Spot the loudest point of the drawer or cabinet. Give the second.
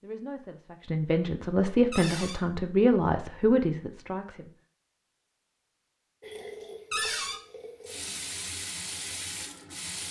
7 s.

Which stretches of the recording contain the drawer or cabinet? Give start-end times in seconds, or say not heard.
1.9-2.4, 6.9-7.4.